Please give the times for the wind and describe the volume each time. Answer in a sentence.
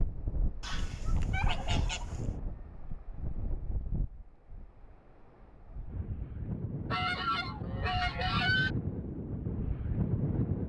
The wind can be heard from 0.0 to 10.6 s, getting quieter then louder.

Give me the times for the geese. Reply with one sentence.
You can hear the geese from 0.6 to 2.4 s and from 6.9 to 8.8 s.